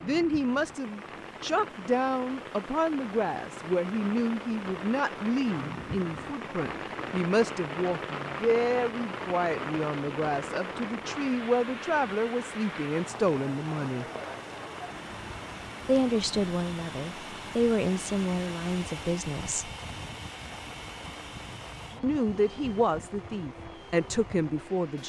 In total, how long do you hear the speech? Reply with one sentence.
You can hear the speech for 21 seconds altogether.